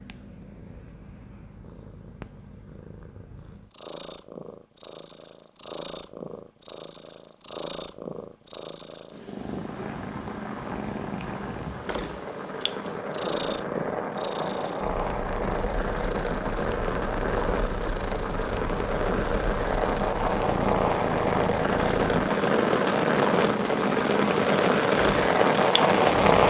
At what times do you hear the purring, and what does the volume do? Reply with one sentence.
You can hear the purring from 0.0 to 26.4 s, getting louder.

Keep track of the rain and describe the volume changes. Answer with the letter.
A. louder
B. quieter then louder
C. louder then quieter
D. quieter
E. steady
A.